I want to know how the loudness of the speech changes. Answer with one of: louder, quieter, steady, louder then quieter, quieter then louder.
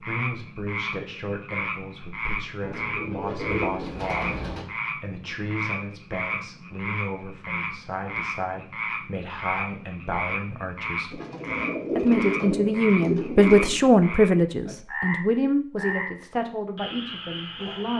louder then quieter.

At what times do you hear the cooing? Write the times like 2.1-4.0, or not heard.
2.6-4.7, 11.1-13.8.